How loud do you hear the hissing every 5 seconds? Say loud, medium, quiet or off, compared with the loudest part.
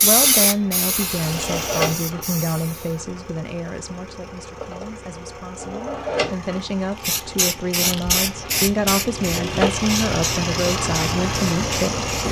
loud, loud, medium.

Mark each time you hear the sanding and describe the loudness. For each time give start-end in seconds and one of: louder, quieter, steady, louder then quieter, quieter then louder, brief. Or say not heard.
not heard.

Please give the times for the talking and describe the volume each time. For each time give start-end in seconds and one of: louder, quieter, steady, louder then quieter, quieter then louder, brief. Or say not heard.
0.0-12.1 quieter then louder.